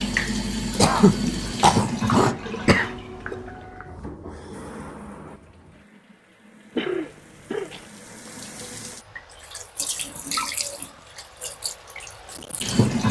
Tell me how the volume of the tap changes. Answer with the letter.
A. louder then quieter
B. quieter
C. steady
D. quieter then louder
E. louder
D.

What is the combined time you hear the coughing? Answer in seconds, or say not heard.
4 s.